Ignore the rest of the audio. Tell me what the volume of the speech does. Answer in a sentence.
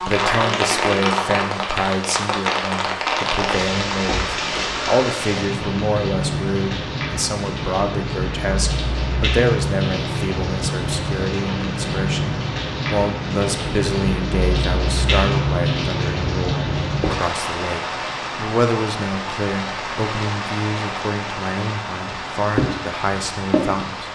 The loudness of the speech stays about the same.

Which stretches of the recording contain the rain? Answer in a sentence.
The rain can be heard from 0.0 to 24.1 s.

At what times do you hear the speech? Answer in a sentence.
The speech can be heard from 0.0 to 24.1 s.